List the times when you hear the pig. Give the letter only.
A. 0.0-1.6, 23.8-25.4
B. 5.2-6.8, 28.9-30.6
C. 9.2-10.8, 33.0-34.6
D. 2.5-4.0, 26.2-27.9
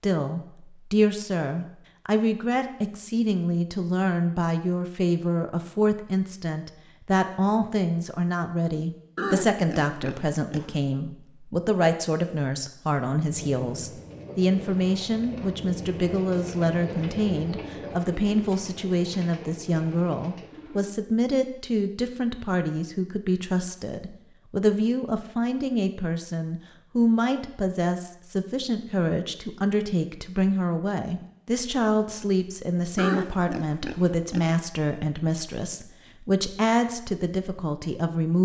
C.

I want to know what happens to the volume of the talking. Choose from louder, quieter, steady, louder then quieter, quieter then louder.
steady.